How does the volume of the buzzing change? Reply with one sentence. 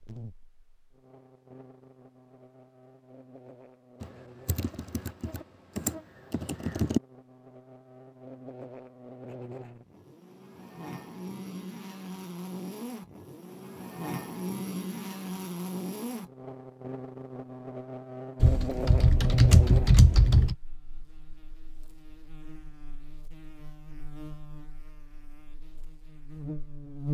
The loudness of the buzzing goes up, then down.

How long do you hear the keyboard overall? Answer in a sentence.
You can hear the keyboard for 5 seconds altogether.